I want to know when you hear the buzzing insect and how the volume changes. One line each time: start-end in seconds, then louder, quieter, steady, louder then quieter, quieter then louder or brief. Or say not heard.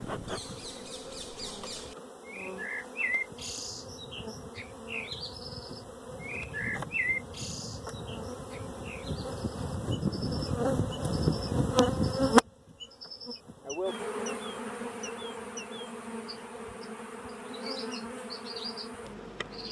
0.0-19.6 louder then quieter.